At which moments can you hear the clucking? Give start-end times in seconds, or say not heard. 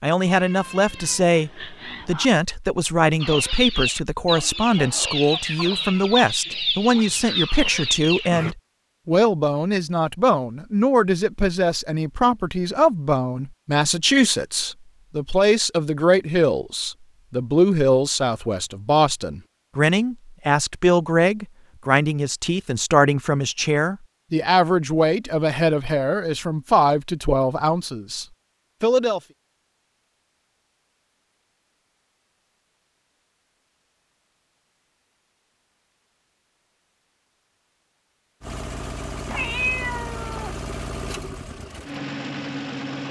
3.2-8.6.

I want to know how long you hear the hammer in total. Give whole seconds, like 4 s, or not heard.
not heard.